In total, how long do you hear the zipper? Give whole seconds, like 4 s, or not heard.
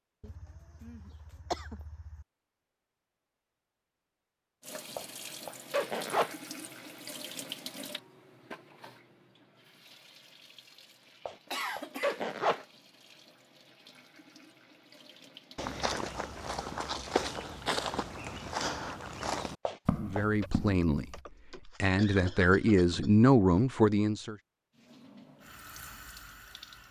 4 s.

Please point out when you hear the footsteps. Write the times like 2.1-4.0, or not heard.
15.6-21.2.